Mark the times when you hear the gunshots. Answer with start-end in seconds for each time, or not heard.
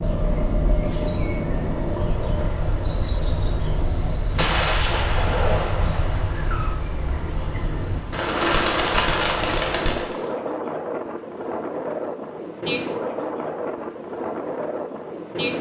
4.3-6.8.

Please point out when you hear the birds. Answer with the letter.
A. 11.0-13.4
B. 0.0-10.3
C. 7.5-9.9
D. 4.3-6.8
B.